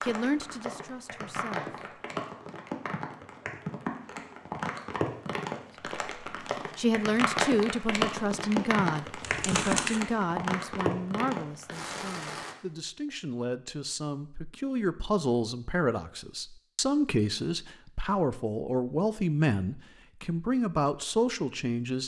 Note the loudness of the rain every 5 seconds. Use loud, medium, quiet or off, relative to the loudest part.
medium, loud, loud, off, off.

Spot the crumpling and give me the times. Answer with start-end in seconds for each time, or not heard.
9.2-10.0.